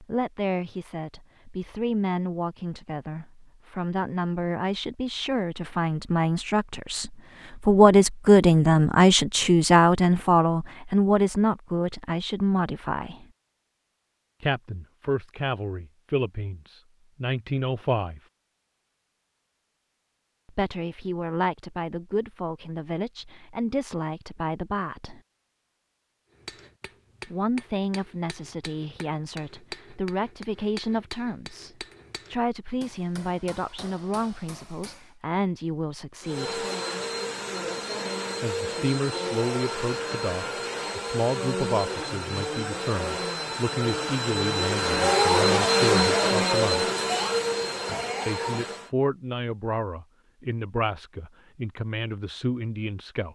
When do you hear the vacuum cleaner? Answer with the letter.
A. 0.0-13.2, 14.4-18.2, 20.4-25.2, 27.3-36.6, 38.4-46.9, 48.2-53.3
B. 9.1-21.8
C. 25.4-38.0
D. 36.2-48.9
D.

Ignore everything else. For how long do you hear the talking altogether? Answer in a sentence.
You can hear the talking for 45 seconds altogether.